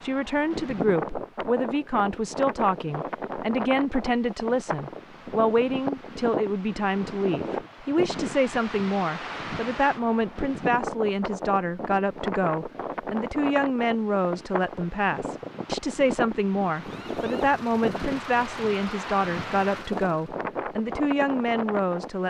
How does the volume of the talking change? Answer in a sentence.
The volume of the talking stays about the same.